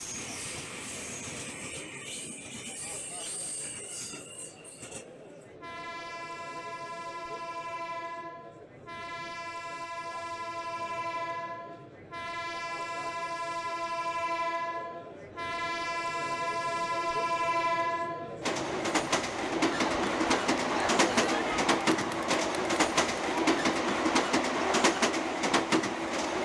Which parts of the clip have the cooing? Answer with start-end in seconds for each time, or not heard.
not heard.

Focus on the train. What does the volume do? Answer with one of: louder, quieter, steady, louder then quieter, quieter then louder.
louder.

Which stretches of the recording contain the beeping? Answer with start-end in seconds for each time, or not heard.
not heard.